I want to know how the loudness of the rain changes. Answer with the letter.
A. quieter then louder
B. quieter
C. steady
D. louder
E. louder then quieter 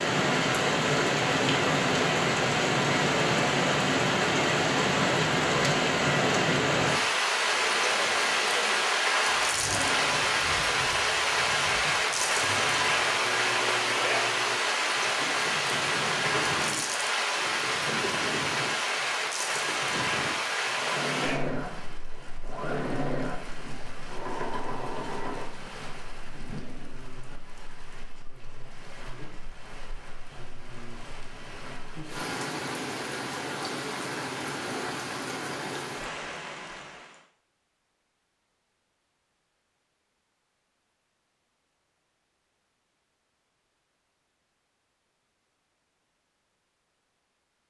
A.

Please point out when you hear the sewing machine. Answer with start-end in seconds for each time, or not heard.
7.4-25.4.